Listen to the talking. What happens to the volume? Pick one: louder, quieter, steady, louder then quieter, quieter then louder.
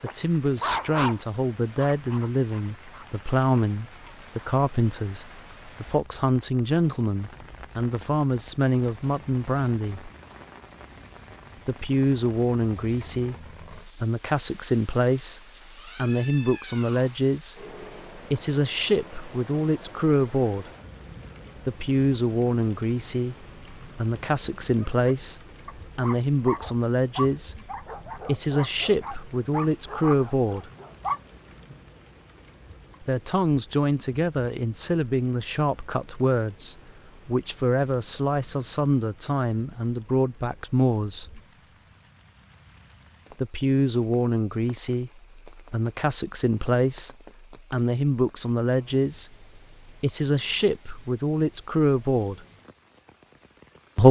steady.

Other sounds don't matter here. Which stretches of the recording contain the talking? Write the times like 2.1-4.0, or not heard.
0.0-10.1, 11.7-20.7, 21.6-30.7, 33.0-41.4, 43.4-52.5.